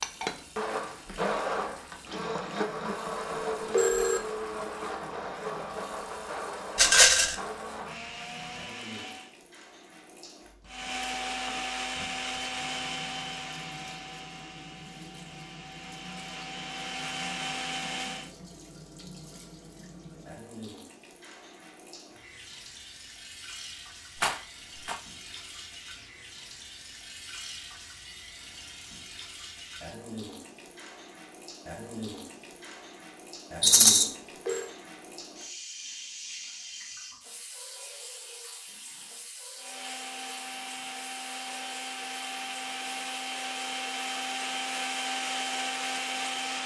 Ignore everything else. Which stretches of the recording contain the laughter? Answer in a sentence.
The laughter can't be heard in this clip.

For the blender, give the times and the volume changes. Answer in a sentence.
The blender can be heard from 0.0 to 9.3 s, getting quieter; from 10.7 to 18.3 s, getting quieter then louder; and from 39.5 to 46.6 s, getting louder.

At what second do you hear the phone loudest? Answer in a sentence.
The volume of the phone peaks at 4 seconds.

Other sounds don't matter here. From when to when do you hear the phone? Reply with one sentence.
You can hear the phone from 3.4 to 4.2 s and from 34.0 to 34.7 s.